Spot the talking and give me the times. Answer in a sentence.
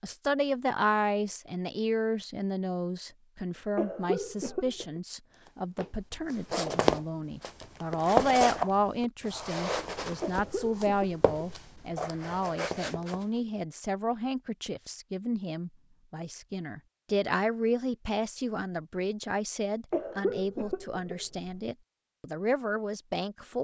The talking can be heard from 0.0 to 23.6 s.